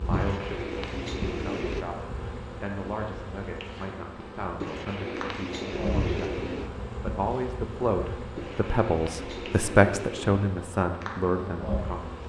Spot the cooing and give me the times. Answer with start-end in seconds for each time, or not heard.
0.1-1.9, 4.6-6.7, 8.3-10.4.